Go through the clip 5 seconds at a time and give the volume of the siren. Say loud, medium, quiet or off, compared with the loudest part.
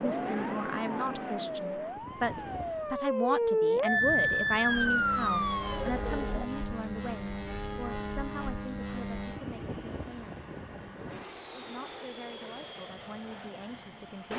loud, loud, off.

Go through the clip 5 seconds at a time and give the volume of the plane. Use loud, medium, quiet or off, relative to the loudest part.
loud, loud, medium.